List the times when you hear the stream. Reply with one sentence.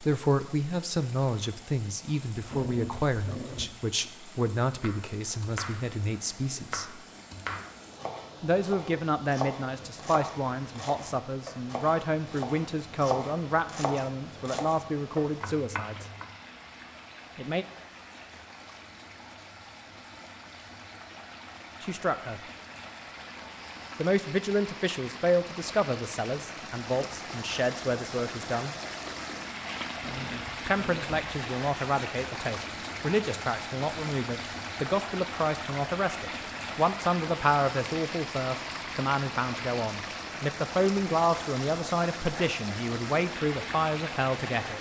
The stream can be heard from 0.0 to 44.7 s.